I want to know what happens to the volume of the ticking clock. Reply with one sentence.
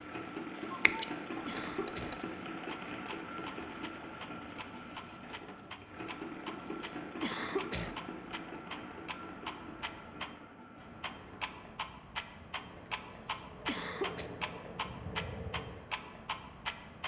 The volume of the ticking clock goes up.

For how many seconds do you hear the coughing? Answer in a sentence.
The coughing can be heard for 3 seconds in total.